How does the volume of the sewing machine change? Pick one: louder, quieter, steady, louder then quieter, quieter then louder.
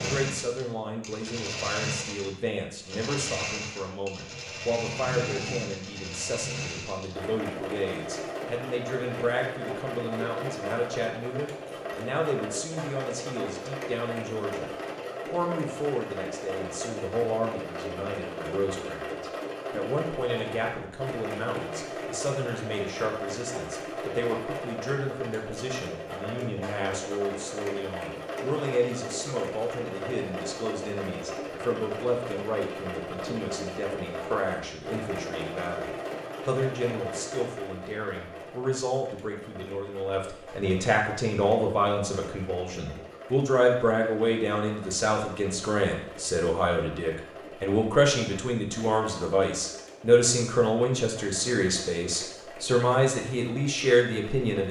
quieter.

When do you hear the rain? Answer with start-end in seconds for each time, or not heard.
not heard.